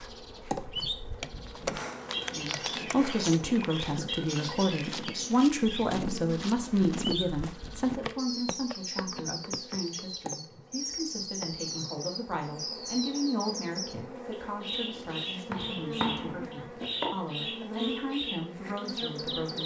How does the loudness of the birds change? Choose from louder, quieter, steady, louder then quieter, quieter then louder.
steady.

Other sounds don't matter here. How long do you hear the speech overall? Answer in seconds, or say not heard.
17 s.